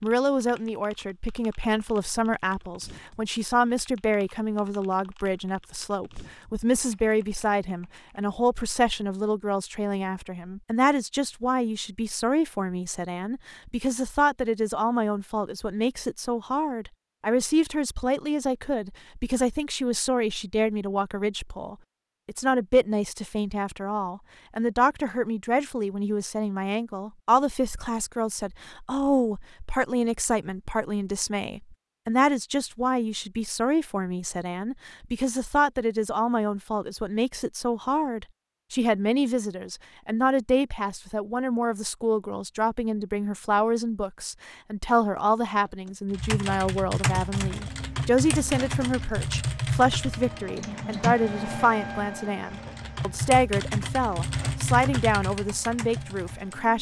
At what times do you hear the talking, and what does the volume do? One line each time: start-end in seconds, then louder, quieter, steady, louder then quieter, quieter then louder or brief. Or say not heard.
0.0-56.7 steady.